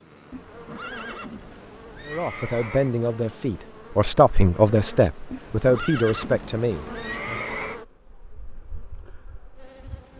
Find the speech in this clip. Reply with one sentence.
You can hear the speech from 2.0 to 7.5 s.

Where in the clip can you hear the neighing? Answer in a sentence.
The neighing can be heard from 0.3 to 3.0 s and from 5.3 to 7.8 s.